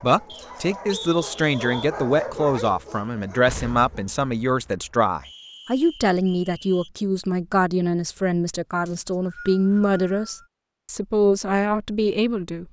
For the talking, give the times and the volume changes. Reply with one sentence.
You can hear the talking from 0.0 to 12.6 s, at a steady volume.